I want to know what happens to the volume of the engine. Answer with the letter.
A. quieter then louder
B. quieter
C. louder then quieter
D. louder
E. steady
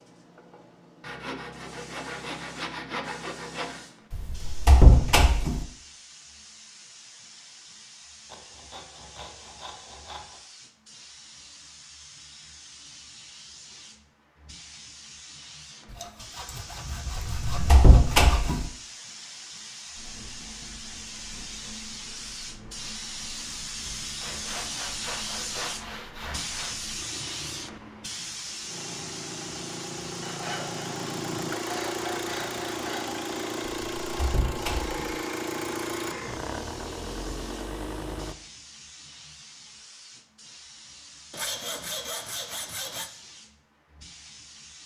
D.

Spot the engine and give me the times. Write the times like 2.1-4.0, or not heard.
19.9-38.4.